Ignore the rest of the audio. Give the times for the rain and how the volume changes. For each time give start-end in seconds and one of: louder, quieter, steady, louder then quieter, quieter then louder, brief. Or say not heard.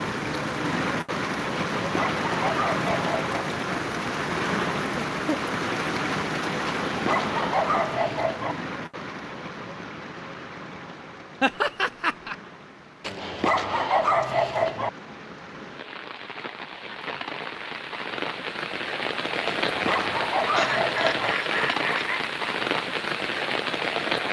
0.0-24.2 quieter then louder.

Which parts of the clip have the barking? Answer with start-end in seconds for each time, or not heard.
1.8-3.4, 6.8-8.6, 13.0-14.9, 19.4-21.4.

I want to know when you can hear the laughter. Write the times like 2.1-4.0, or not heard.
5.1-5.5, 11.4-12.3, 20.6-22.2.